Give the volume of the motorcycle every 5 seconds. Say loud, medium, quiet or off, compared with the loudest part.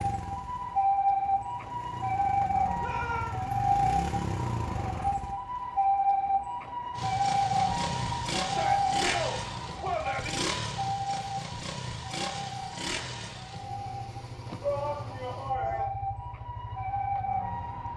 loud, loud, loud, medium.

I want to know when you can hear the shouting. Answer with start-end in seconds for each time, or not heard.
2.8-3.4, 8.4-10.3, 14.6-15.9.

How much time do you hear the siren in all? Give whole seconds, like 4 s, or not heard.
18 s.